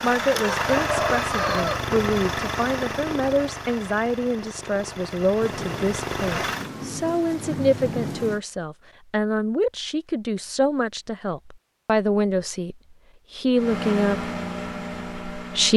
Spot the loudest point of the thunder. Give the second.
8 s.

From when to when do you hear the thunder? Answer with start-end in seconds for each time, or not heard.
5.4-8.4.